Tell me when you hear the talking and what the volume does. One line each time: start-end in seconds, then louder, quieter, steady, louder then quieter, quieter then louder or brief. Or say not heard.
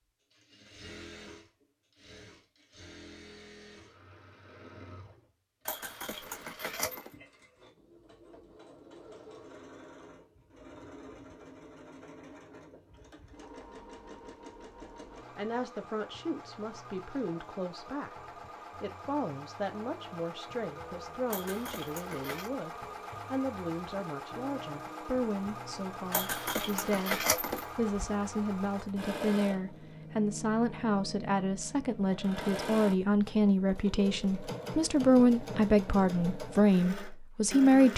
15.3-37.9 louder.